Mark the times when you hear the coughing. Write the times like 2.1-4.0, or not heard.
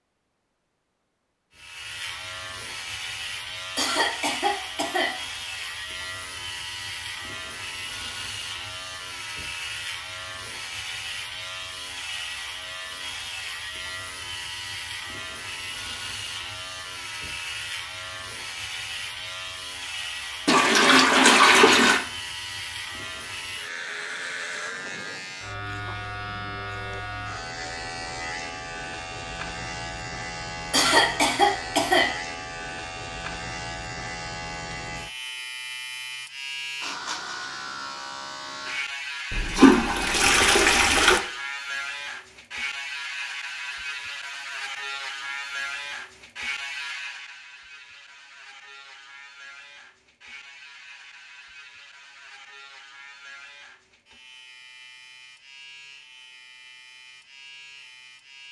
3.8-5.2, 30.7-32.1.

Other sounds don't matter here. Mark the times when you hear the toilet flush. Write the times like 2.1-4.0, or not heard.
20.4-22.1, 39.3-41.2.